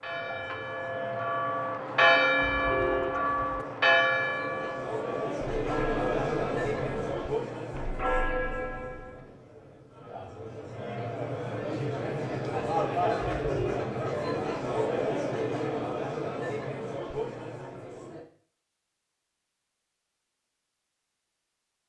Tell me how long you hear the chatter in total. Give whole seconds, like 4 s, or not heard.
18 s.